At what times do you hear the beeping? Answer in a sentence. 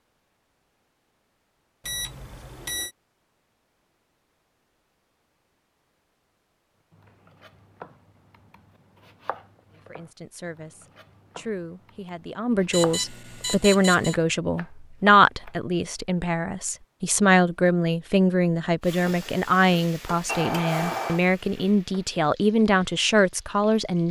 You can hear the beeping from 1.9 to 2.9 s, from 12.7 to 14.2 s and from 20.2 to 21.2 s.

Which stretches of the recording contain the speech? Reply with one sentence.
The speech can be heard from 9.9 to 24.0 s.